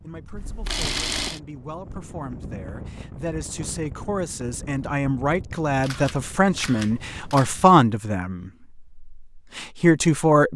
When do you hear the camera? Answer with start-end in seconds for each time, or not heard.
0.3-1.4, 5.8-7.5.